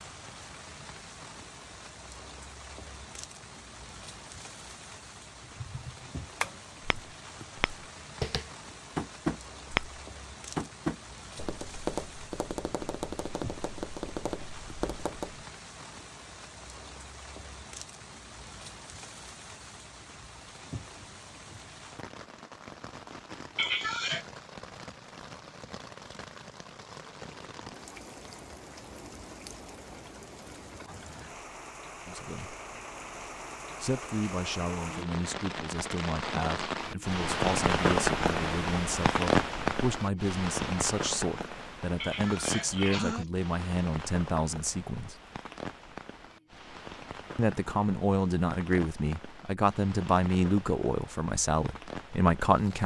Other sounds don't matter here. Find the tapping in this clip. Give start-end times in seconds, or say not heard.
5.5-15.4.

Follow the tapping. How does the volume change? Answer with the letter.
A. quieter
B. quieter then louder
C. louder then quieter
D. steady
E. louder
C.